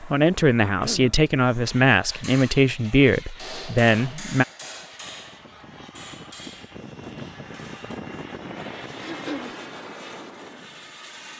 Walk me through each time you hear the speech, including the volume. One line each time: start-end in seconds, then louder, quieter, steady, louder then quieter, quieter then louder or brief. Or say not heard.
0.0-4.5 steady.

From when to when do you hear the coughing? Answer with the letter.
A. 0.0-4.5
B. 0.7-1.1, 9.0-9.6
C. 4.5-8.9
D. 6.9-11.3
B.